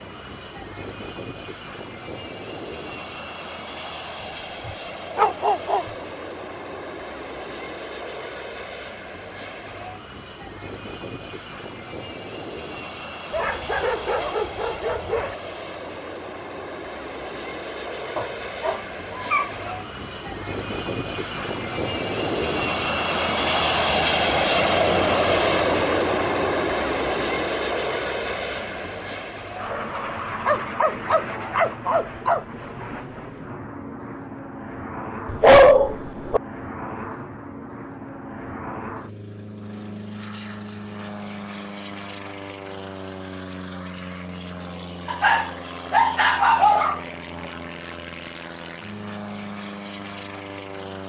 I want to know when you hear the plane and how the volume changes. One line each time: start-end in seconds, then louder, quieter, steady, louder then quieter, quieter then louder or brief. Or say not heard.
0.0-51.0 louder then quieter.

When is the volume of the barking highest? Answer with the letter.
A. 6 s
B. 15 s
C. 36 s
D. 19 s
C.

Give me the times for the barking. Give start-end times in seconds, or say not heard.
4.7-5.9, 13.3-15.3, 18.1-19.8, 30.4-32.5, 35.2-36.4, 45.0-47.0.